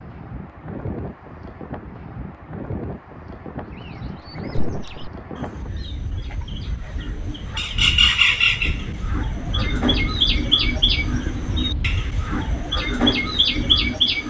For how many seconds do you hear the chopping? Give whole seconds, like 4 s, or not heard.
not heard.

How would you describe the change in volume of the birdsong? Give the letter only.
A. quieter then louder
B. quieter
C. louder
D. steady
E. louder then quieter
C.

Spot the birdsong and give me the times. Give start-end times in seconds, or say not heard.
3.9-14.2.